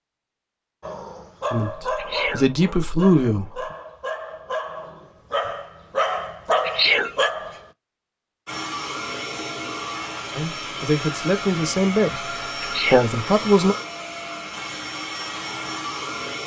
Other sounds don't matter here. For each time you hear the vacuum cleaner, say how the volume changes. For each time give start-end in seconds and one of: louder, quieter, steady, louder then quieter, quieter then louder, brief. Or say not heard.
8.4-16.4 steady.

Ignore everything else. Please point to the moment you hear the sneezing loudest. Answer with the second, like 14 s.
7 s.